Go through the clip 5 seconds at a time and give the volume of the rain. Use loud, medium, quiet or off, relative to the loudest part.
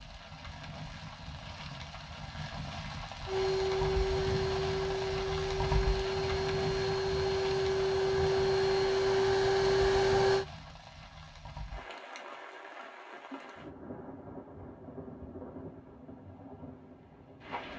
loud, loud, medium, medium.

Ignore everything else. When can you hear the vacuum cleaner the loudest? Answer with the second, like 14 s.
10 s.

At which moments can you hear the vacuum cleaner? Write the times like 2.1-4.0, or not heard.
3.2-10.4.